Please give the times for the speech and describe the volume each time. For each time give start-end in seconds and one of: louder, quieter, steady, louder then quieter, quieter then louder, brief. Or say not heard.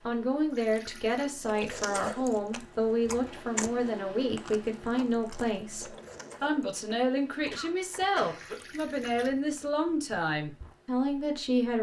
0.1-11.7 steady.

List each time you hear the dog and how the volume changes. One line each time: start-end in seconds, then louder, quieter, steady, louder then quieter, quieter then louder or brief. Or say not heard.
not heard.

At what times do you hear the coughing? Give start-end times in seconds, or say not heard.
7.5-8.7.